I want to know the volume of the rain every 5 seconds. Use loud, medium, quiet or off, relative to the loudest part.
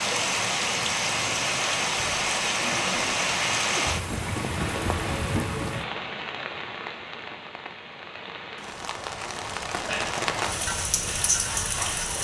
loud, medium, loud.